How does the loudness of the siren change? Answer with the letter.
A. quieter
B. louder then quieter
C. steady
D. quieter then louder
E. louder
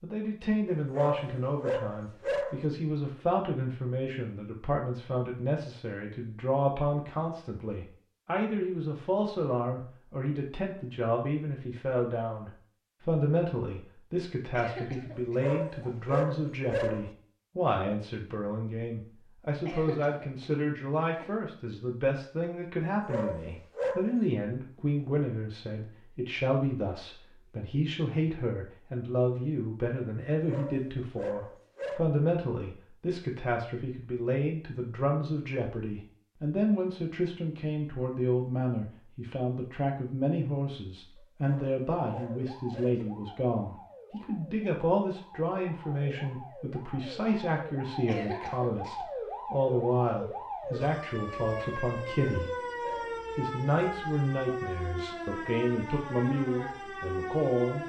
E.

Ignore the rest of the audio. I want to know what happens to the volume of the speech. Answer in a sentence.
The loudness of the speech stays about the same.